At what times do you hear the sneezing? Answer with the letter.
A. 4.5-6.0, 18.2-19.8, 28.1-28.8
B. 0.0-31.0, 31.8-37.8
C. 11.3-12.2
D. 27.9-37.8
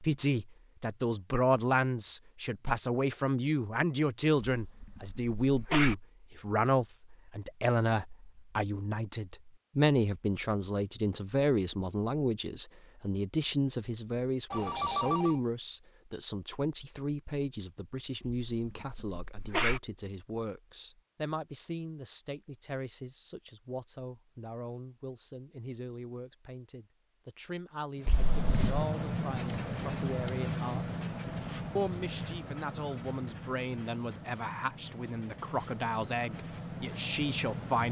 A.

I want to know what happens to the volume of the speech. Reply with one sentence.
The loudness of the speech goes down, then up.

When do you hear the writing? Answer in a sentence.
The writing can be heard from 27.9 to 37.8 s.